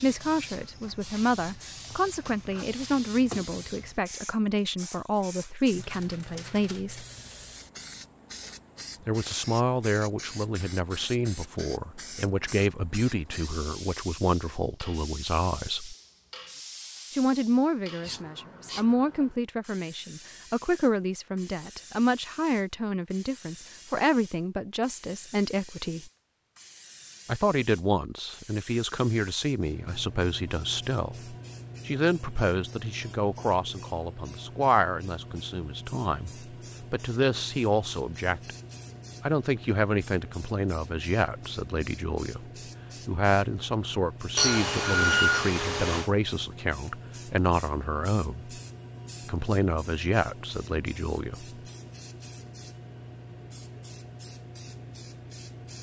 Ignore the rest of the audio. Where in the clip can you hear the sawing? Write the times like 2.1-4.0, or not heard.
44.4-46.1.